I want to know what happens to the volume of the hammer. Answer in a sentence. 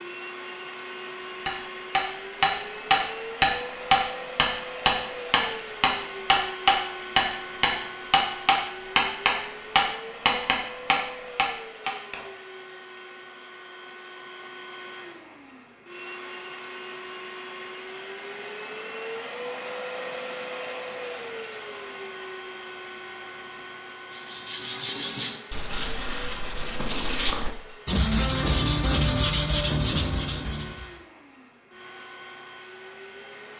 The volume of the hammer stays about the same.